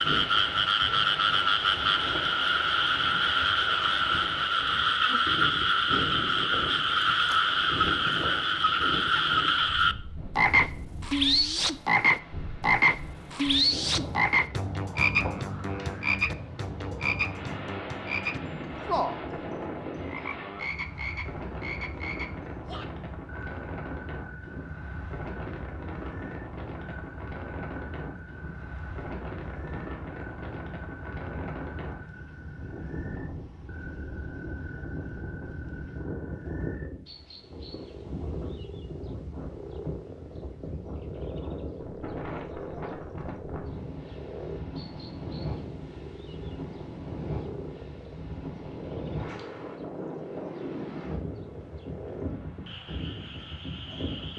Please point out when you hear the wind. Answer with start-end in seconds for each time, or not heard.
0.0-54.3.